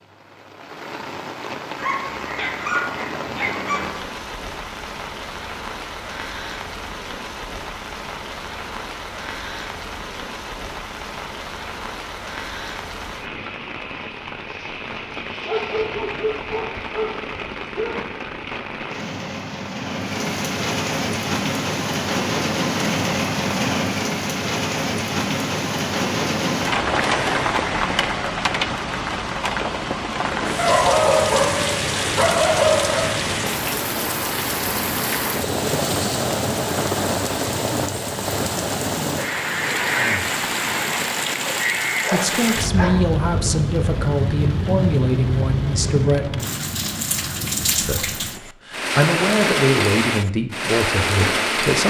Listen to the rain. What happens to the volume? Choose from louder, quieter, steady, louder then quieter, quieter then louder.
louder.